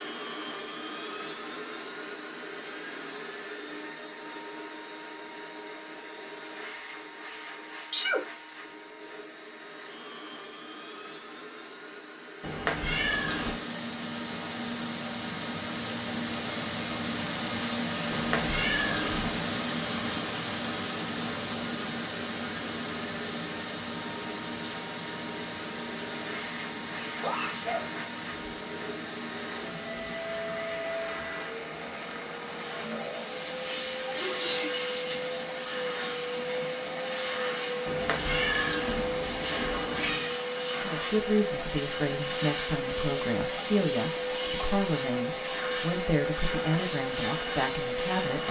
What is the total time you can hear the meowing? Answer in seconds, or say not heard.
5 s.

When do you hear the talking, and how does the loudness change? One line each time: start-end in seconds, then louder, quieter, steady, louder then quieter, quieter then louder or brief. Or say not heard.
40.7-48.4 steady.